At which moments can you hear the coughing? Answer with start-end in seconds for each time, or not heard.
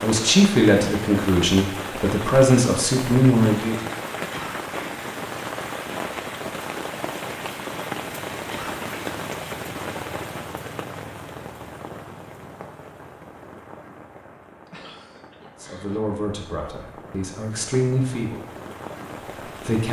4.2-4.8, 8.4-9.1, 14.7-16.0.